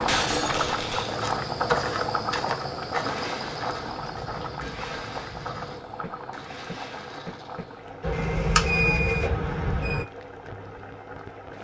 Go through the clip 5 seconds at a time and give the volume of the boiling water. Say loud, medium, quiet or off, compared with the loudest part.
loud, medium, medium.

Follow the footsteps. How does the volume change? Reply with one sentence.
The volume of the footsteps goes down.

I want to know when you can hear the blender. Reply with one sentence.
The blender can be heard from 3.0 to 9.3 s.